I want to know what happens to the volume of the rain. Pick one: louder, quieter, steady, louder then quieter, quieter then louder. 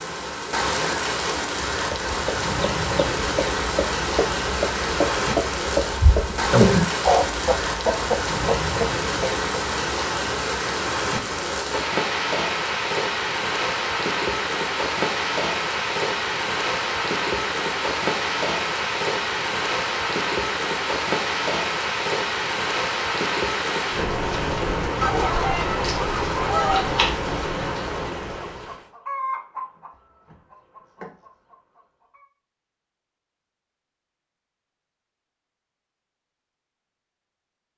steady.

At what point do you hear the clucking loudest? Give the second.
7 s.